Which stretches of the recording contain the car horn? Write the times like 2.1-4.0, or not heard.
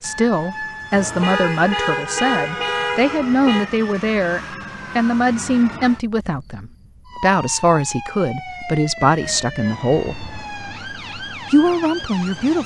0.9-3.7, 10.1-10.6.